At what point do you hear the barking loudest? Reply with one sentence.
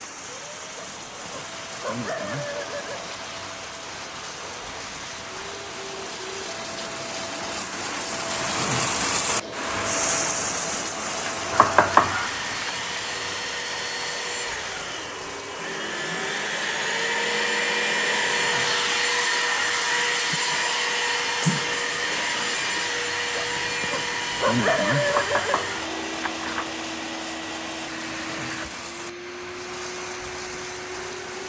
The volume of the barking peaks at 25 seconds.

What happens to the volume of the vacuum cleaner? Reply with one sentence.
The volume of the vacuum cleaner goes up, then down.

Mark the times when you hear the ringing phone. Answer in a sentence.
You can't hear the ringing phone here.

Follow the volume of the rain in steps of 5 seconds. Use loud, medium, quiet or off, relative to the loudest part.
medium, loud, loud, medium, medium, medium, medium.